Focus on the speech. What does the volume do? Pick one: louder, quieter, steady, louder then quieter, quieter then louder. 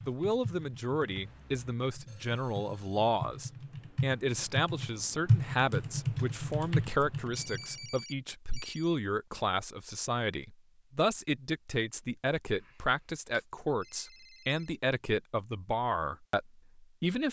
steady.